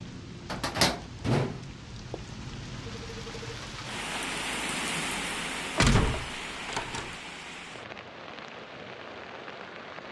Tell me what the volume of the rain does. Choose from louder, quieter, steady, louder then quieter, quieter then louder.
louder then quieter.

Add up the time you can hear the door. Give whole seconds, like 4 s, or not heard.
3 s.